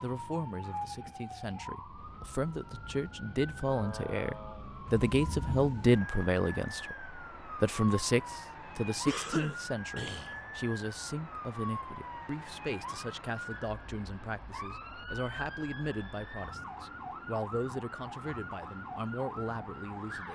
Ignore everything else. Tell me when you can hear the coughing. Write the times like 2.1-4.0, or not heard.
9.1-10.4.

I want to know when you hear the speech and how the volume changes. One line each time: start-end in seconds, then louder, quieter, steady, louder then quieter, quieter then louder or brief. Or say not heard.
0.0-20.3 louder then quieter.